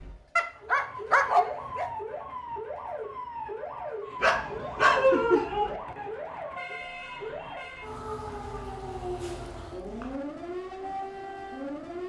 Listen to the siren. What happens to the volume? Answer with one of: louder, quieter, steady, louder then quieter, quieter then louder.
steady.